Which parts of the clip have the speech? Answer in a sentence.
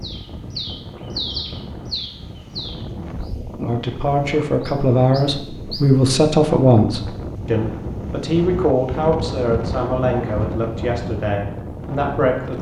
You can hear the speech from 3.5 to 12.5 s.